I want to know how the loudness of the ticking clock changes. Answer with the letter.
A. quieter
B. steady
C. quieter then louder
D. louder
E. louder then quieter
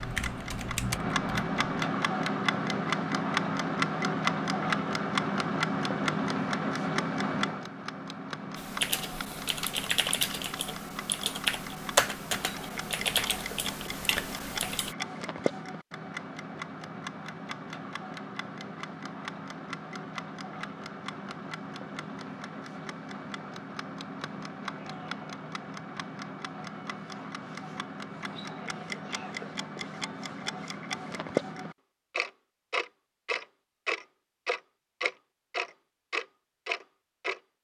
C.